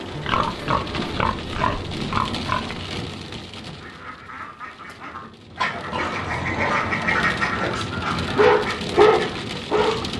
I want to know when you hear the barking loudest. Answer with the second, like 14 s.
9 s.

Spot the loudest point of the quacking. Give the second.
7 s.